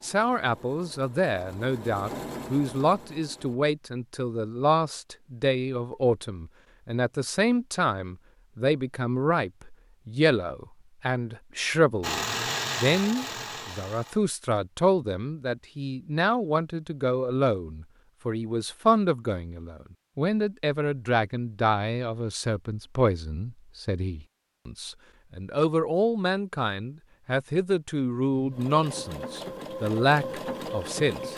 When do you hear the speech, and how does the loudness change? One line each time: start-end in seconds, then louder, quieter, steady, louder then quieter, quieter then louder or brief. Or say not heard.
0.0-31.3 steady.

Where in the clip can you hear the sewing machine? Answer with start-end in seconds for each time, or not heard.
0.0-3.6, 12.0-14.2, 28.3-31.3.